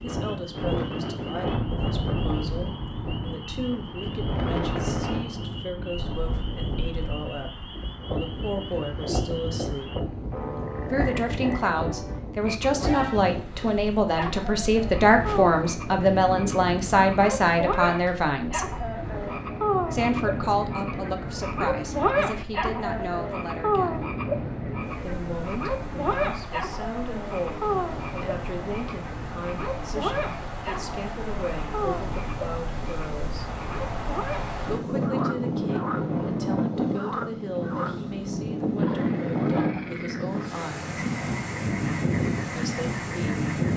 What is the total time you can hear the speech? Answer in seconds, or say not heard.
38 s.